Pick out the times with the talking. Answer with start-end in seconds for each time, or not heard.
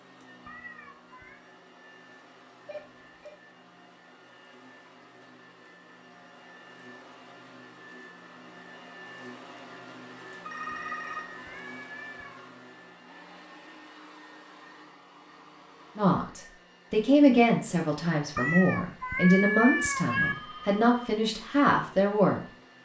15.9-22.4.